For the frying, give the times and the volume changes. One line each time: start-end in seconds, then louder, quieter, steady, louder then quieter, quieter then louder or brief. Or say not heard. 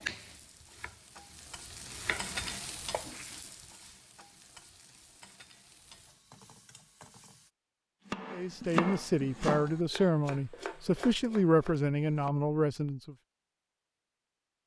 0.0-7.5 louder then quieter.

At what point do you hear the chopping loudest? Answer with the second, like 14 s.
9 s.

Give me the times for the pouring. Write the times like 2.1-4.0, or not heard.
not heard.